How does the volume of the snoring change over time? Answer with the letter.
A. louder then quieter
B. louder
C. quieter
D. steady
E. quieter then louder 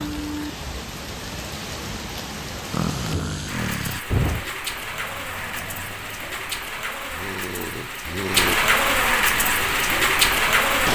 E.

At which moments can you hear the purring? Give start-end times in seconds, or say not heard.
not heard.